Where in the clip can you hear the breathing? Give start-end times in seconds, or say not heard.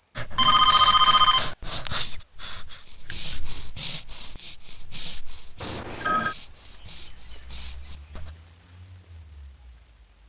0.1-8.3.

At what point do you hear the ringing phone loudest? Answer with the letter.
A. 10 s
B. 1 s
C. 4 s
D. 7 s
B.